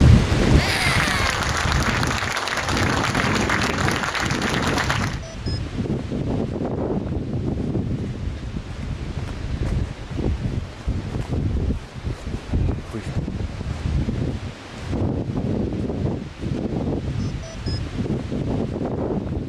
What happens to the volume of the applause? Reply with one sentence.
The volume of the applause stays about the same.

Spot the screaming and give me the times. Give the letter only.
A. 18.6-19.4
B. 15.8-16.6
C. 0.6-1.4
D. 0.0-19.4
C.